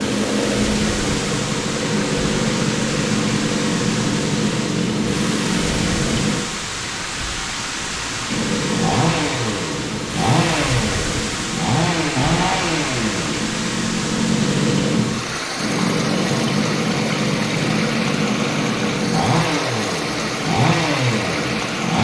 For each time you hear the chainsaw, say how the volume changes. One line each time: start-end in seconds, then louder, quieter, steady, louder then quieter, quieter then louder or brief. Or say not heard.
0.0-6.4 steady
8.3-21.9 steady.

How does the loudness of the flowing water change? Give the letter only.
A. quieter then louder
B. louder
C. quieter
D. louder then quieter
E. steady
E.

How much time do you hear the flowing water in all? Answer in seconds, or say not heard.
22 s.